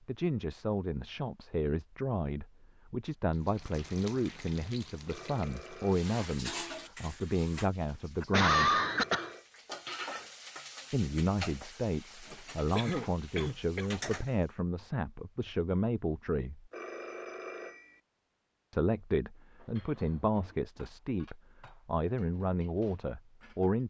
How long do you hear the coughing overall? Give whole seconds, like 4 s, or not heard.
3 s.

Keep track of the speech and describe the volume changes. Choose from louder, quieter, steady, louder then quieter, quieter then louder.
steady.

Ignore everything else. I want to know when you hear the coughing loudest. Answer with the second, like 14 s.
9 s.